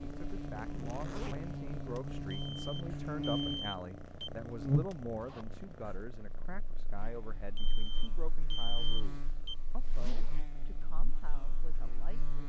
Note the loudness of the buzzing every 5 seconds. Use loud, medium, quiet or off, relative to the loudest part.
loud, quiet, quiet.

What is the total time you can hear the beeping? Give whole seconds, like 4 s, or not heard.
4 s.